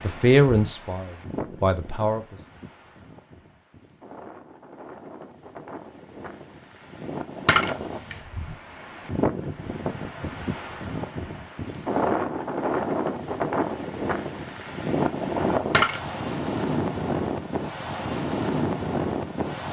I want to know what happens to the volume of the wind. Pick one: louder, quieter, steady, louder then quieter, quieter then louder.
louder.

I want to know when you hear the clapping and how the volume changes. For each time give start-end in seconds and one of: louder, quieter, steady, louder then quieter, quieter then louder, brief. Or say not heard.
not heard.